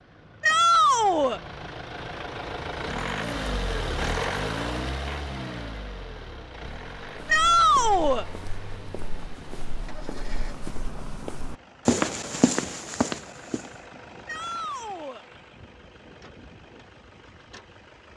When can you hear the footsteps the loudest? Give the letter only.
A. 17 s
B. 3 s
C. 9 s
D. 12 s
D.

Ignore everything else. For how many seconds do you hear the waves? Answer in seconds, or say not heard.
not heard.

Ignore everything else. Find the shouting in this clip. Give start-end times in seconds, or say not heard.
0.4-1.4, 7.2-8.2, 14.2-15.2.